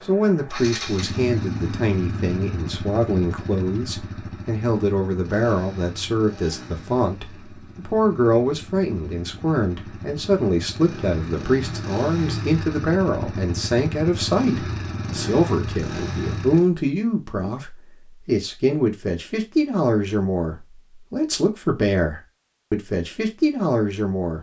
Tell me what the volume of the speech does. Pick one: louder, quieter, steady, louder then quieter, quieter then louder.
steady.